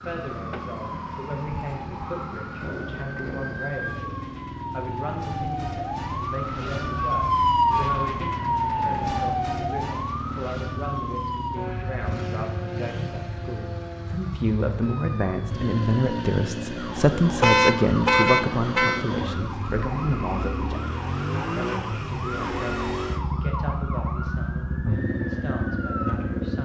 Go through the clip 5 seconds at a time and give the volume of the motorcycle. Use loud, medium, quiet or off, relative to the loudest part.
medium, medium, medium, loud, loud, loud.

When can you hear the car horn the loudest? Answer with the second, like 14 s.
18 s.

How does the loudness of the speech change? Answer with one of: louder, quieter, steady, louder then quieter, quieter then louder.
louder then quieter.